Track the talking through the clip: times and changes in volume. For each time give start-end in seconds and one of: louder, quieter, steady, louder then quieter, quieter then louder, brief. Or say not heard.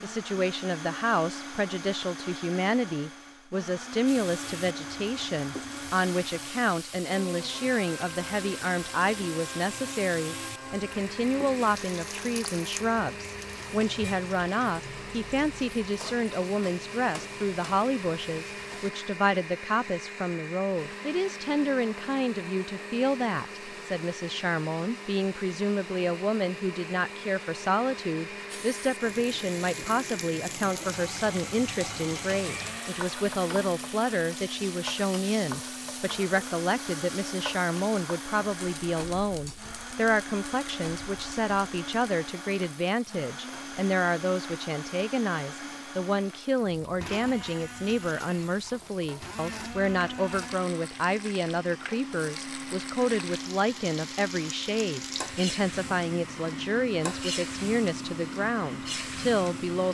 0.0-59.8 steady.